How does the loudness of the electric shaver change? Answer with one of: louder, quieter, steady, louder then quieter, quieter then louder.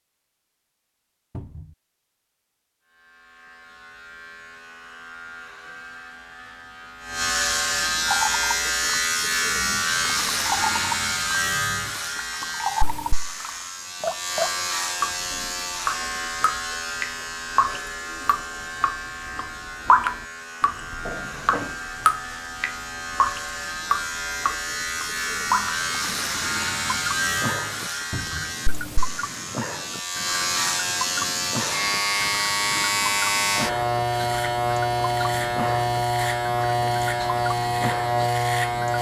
quieter then louder.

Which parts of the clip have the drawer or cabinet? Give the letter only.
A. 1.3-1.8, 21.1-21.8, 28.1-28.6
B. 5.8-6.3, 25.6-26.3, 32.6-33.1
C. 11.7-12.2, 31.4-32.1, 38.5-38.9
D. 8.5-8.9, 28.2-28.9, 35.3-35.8
A.